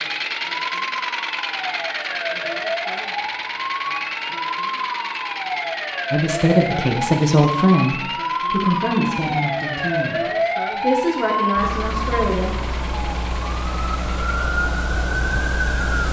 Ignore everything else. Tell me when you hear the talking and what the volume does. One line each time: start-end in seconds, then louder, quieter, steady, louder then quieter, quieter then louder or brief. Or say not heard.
6.1-12.6 quieter.